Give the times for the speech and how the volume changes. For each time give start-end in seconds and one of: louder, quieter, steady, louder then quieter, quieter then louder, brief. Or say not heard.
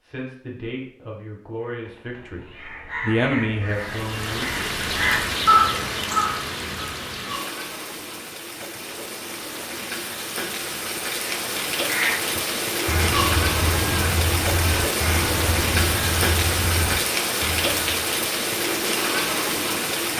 0.0-4.7 louder then quieter.